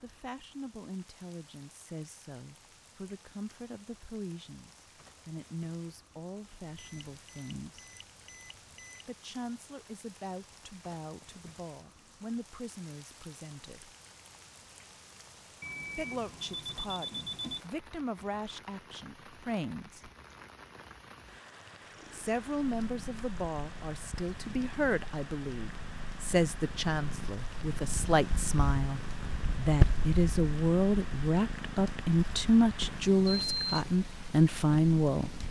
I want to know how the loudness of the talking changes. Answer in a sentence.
The loudness of the talking goes up.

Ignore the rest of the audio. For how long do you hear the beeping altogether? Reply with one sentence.
You can hear the beeping for 6 seconds altogether.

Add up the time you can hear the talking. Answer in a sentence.
You can hear the talking for 30 seconds altogether.